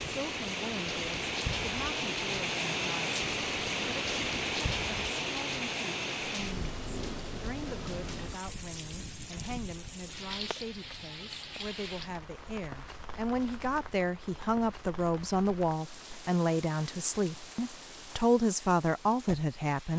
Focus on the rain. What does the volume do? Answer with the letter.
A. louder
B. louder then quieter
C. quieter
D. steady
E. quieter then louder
C.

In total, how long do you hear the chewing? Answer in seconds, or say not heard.
not heard.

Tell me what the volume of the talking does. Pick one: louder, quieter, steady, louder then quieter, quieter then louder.
louder.